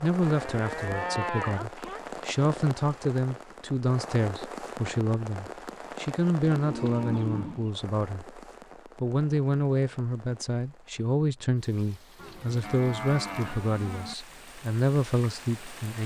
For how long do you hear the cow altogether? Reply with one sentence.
The cow can be heard for 5 seconds in total.